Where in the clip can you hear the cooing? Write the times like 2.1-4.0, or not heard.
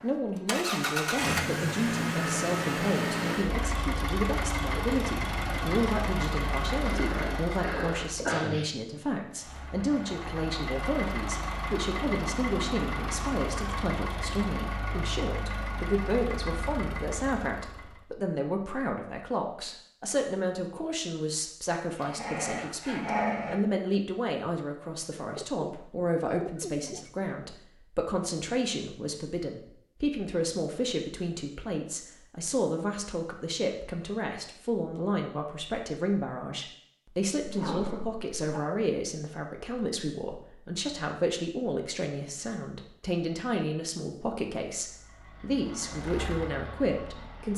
25.2-27.1.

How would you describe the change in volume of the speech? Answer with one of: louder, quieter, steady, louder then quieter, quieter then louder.
steady.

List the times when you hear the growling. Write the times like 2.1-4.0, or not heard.
6.8-8.7, 21.9-23.6, 37.4-38.6.